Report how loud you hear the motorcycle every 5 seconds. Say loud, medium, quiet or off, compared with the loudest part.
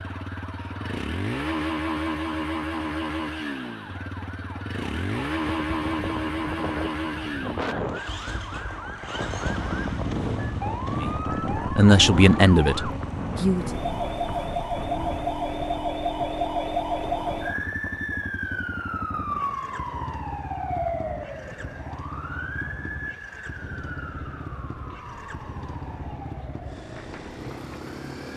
loud, loud, loud, medium, medium, medium.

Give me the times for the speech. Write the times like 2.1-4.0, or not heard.
10.9-13.7.